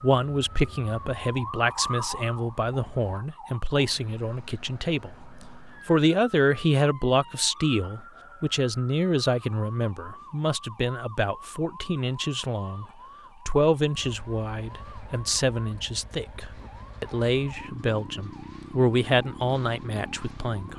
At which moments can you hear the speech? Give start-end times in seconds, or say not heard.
0.0-12.8, 13.4-20.7.